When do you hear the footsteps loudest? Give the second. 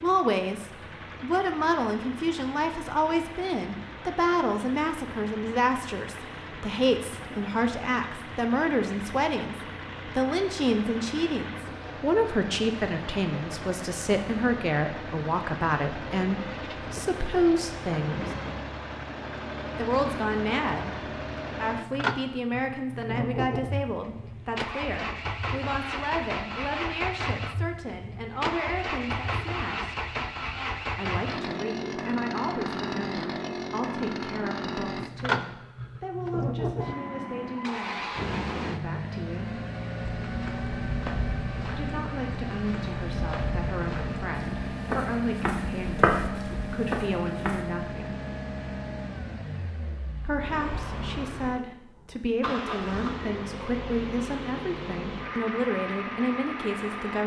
46 s.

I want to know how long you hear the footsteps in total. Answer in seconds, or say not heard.
8 s.